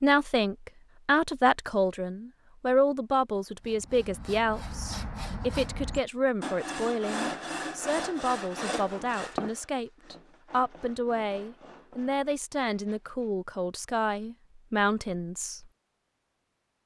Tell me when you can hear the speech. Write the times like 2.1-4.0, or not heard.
0.0-15.7.